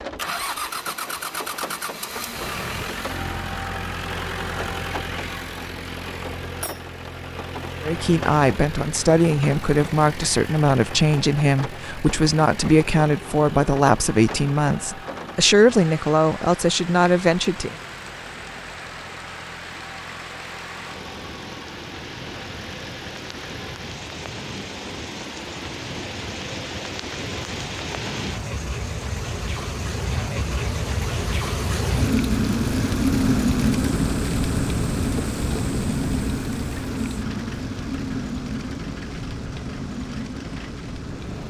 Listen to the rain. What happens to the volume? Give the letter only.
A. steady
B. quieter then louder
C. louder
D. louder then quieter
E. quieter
C.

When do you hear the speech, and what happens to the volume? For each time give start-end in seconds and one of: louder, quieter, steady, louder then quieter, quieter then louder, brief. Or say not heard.
7.8-17.8 steady.